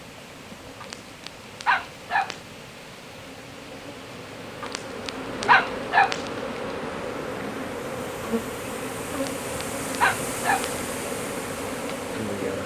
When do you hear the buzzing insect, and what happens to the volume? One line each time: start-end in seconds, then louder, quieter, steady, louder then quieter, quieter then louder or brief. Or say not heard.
0.0-12.6 louder.